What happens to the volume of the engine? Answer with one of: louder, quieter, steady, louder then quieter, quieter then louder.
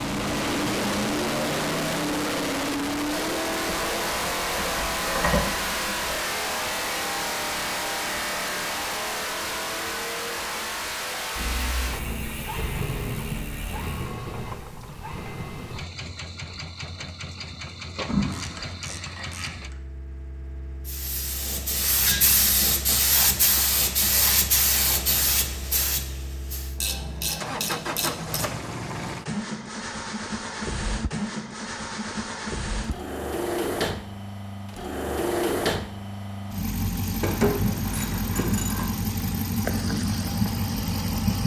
quieter then louder.